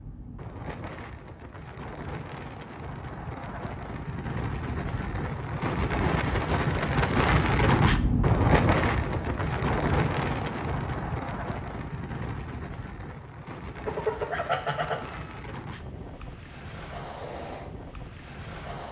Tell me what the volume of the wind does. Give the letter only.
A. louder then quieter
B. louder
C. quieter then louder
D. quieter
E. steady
A.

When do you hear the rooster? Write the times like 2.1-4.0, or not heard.
13.8-15.4.